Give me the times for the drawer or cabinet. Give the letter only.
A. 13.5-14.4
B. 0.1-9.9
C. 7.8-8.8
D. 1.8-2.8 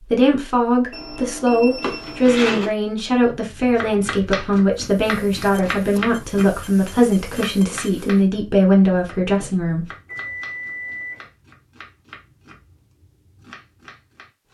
D.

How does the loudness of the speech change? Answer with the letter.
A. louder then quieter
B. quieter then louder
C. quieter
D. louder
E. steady
E.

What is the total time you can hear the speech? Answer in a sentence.
The speech can be heard for 10 seconds in total.